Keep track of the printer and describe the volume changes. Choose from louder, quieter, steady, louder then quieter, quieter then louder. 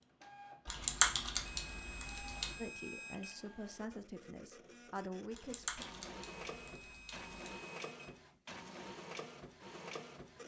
louder.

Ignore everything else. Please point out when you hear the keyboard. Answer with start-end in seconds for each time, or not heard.
0.7-2.6, 5.3-7.6.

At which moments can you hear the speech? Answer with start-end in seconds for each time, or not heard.
2.5-5.8.